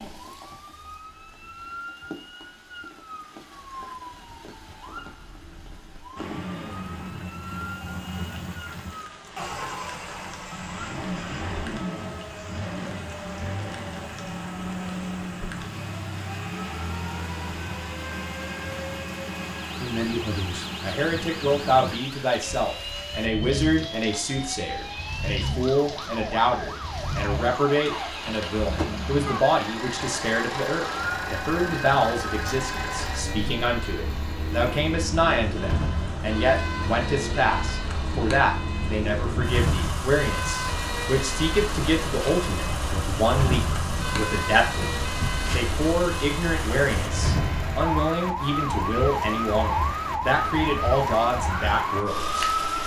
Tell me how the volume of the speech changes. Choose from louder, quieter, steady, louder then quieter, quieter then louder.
steady.